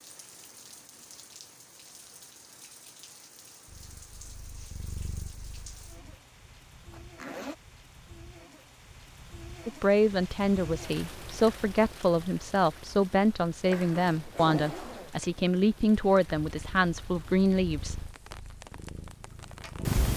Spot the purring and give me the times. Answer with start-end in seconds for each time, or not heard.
3.6-6.2, 16.4-20.1.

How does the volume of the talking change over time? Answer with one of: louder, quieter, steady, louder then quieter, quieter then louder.
steady.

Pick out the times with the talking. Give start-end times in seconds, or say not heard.
9.7-18.0.